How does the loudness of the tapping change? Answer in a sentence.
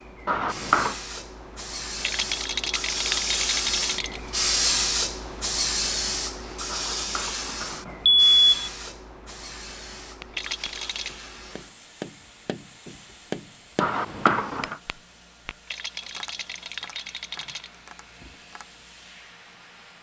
The loudness of the tapping goes up, then down.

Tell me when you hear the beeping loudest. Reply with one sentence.
The loudest moment of the beeping is at 8 seconds.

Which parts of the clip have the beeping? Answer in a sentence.
You can hear the beeping from 0.2 to 0.9 s, from 6.7 to 8.7 s and from 13.8 to 14.8 s.